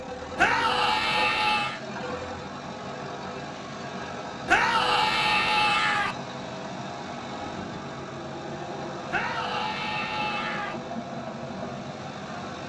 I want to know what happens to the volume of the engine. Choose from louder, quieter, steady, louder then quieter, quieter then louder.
steady.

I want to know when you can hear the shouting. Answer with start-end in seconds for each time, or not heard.
0.3-1.8, 4.5-6.2, 9.1-10.8.